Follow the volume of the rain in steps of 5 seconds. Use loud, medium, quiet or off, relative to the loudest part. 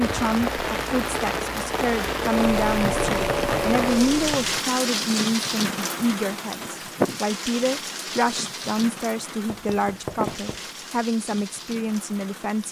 loud, loud, medium.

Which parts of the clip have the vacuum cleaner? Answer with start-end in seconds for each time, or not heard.
2.3-4.3.